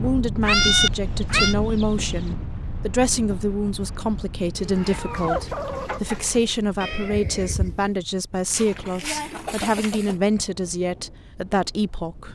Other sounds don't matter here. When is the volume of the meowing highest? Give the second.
1 s.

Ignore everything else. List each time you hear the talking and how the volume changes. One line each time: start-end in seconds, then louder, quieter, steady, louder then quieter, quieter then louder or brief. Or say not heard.
0.0-12.3 steady.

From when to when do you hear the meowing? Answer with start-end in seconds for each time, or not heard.
0.4-1.6, 6.8-7.9.